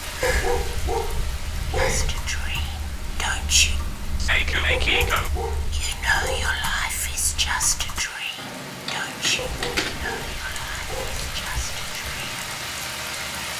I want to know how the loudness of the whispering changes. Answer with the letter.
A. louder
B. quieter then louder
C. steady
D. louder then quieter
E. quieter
E.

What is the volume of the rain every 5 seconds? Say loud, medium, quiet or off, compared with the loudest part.
loud, medium, loud.